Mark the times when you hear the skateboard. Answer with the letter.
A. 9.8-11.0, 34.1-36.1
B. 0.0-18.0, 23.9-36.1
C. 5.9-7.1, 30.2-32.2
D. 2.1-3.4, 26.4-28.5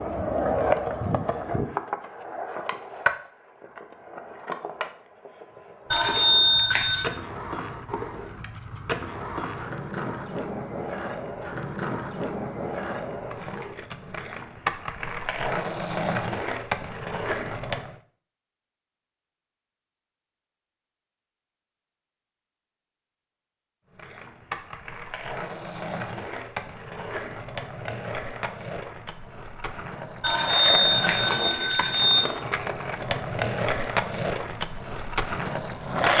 B.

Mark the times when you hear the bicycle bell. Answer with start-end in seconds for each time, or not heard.
5.9-7.1, 30.2-32.2.